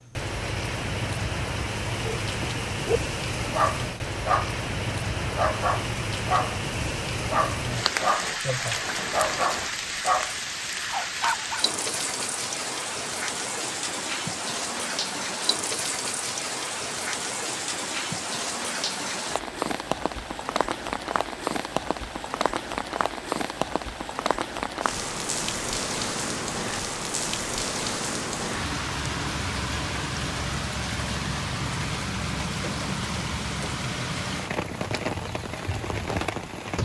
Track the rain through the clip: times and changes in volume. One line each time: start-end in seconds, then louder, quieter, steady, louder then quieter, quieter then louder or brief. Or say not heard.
0.0-36.8 steady.